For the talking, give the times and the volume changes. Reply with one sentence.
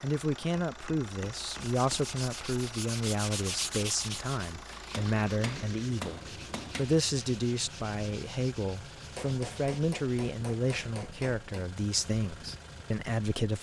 The talking can be heard from 0.0 to 13.5 s, at a steady volume.